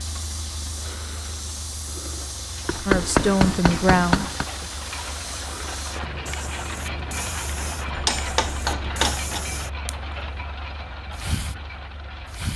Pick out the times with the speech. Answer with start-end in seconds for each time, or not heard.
2.9-4.8.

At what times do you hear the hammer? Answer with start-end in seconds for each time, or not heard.
2.6-4.5, 8.0-9.4.